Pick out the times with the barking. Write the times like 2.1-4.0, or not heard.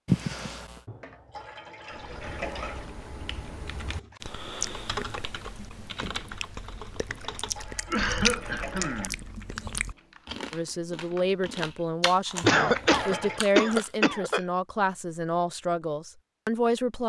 not heard.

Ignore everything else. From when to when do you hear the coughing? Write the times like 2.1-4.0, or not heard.
0.1-0.8, 7.8-9.2, 12.4-14.4.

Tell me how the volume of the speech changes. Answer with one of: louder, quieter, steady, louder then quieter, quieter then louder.
steady.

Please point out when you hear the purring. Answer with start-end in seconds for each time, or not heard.
not heard.